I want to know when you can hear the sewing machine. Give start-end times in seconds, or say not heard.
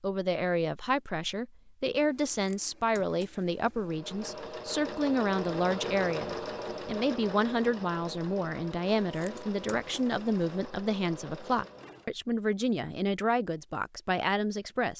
3.8-12.1.